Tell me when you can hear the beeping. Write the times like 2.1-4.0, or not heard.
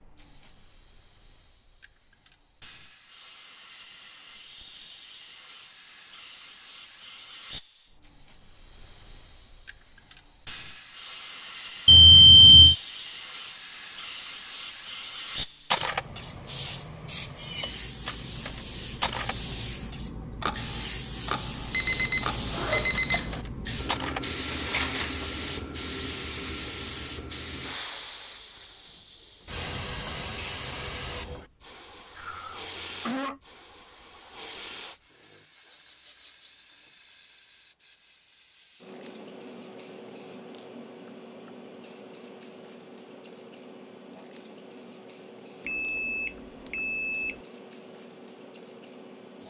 11.8-12.8, 21.7-23.4, 45.6-47.4.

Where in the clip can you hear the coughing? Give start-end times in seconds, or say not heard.
32.1-33.4.